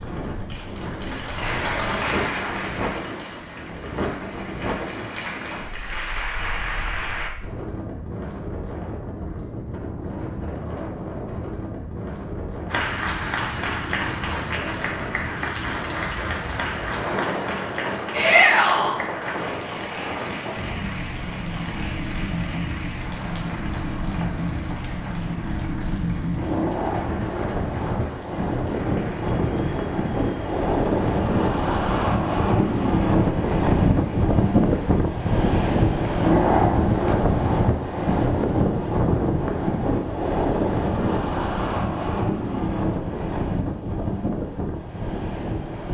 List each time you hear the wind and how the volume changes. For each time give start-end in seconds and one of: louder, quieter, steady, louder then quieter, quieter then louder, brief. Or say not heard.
0.0-45.8 louder.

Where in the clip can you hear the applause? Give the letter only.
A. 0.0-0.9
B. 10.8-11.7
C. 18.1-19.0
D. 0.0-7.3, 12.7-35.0
D.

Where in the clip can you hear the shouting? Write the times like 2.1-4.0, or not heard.
18.1-19.0.